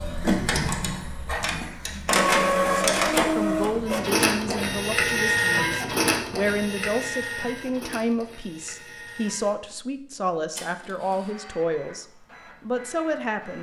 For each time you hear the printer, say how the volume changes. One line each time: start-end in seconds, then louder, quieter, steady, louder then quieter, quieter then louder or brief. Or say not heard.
0.0-13.5 quieter.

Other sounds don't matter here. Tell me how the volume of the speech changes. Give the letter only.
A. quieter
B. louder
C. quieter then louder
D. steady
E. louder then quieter
D.